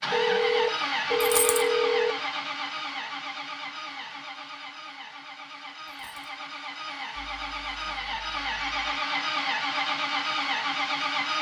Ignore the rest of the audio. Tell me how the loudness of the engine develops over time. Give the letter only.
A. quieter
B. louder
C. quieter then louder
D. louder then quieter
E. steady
C.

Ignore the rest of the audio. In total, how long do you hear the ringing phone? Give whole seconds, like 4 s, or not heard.
4 s.